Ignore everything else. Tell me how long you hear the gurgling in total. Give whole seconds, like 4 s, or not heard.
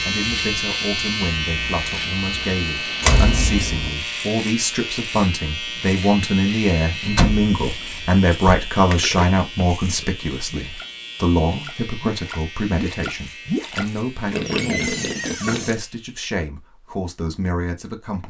7 s.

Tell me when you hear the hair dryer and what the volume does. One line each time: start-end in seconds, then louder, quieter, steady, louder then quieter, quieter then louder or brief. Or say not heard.
not heard.